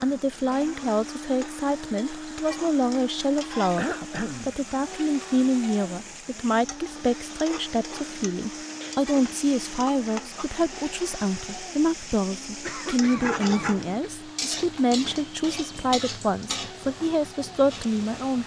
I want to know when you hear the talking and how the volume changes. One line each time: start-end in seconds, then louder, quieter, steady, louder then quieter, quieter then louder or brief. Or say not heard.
0.0-18.4 steady.